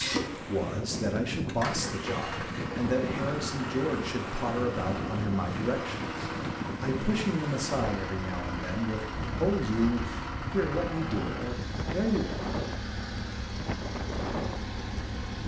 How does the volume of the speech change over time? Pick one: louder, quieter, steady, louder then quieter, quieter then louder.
steady.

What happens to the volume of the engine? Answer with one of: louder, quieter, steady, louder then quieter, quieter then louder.
steady.